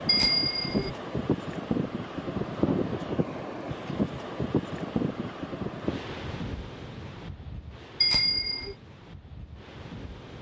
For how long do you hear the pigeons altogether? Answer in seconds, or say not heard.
not heard.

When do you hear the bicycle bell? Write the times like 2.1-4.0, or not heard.
0.1-0.9, 8.0-8.8.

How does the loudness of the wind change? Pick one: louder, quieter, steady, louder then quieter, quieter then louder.
quieter.